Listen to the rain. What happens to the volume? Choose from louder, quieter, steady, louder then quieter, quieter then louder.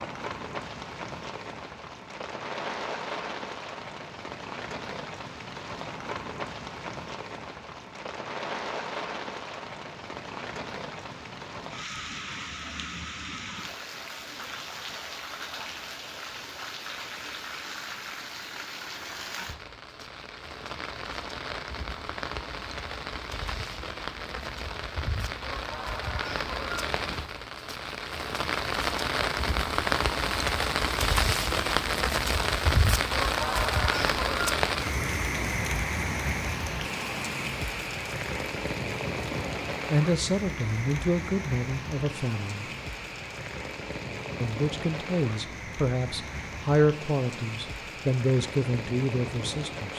louder then quieter.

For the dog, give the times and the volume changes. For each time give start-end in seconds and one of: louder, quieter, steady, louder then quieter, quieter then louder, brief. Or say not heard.
not heard.